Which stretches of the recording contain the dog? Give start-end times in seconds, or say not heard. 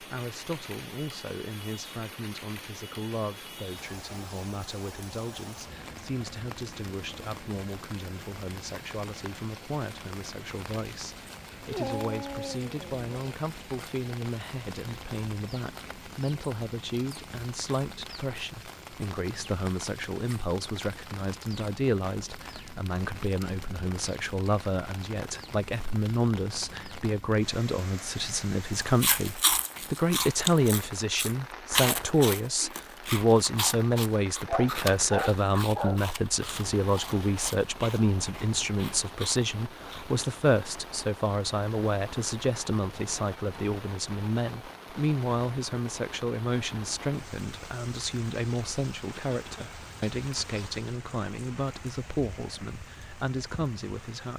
11.7-13.1, 34.5-36.0.